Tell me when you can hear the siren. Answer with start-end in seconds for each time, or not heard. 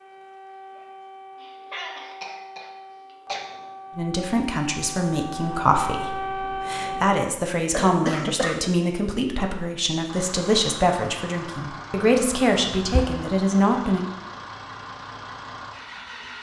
0.0-7.1.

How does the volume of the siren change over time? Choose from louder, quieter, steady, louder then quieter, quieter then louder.
louder.